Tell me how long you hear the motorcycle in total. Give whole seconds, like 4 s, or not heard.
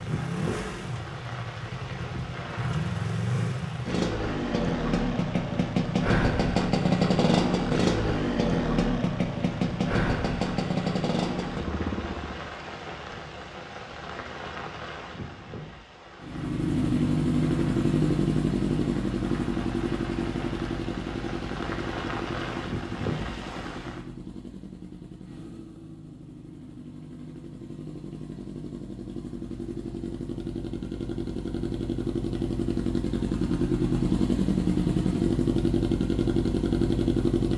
34 s.